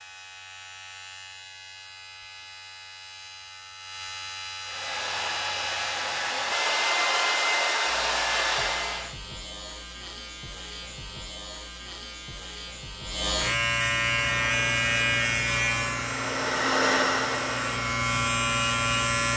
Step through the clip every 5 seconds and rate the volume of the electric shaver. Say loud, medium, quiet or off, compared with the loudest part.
quiet, medium, loud, loud.